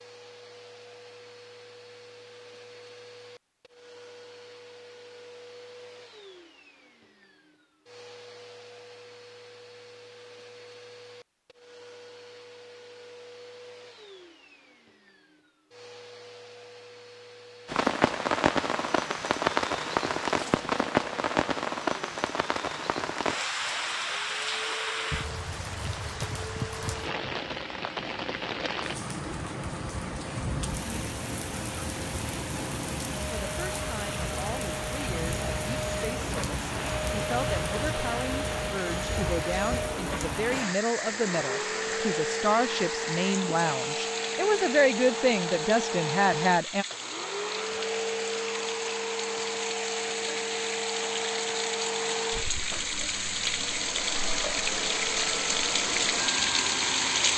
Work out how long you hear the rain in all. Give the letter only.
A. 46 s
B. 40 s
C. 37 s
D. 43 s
B.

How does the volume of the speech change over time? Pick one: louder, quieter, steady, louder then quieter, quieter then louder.
louder.